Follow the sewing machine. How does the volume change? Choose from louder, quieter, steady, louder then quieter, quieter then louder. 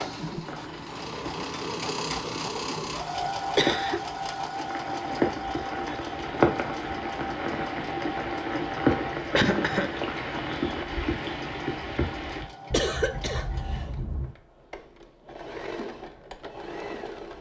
quieter.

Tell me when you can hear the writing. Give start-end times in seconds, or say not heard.
not heard.